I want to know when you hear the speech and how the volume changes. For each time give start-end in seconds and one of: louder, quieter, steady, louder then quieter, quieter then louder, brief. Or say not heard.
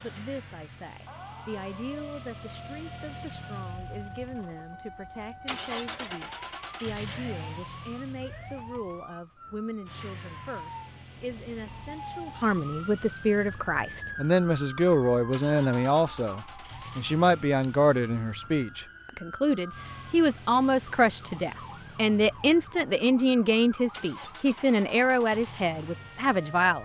0.0-26.7 louder.